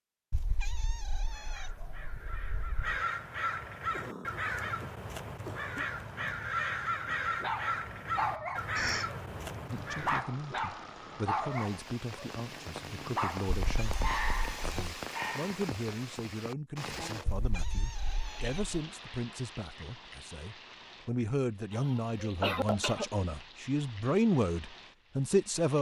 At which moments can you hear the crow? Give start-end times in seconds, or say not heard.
1.2-10.2.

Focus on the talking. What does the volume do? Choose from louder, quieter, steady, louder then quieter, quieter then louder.
louder.